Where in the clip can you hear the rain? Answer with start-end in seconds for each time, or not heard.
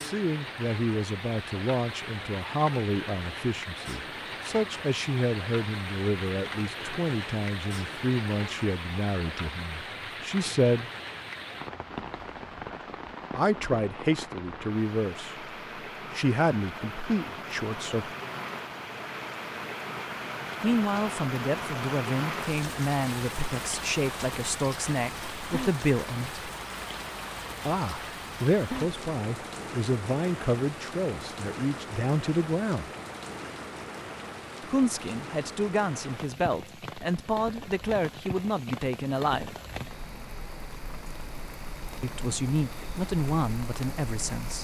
0.0-44.5.